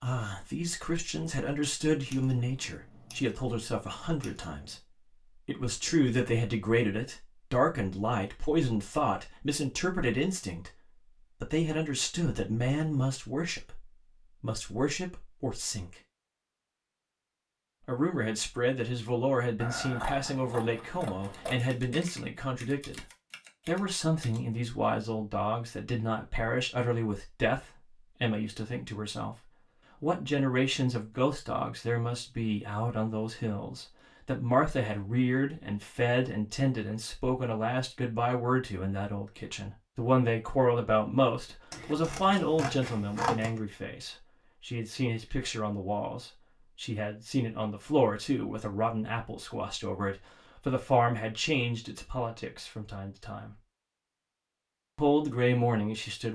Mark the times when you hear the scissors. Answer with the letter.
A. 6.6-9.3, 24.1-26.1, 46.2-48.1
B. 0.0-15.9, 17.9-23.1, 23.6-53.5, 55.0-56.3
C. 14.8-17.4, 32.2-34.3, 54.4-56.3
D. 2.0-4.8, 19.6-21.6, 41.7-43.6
D.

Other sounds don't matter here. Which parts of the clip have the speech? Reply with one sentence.
You can hear the speech from 0.0 to 15.9 s, from 17.9 to 23.1 s, from 23.6 to 53.5 s and from 55.0 to 56.3 s.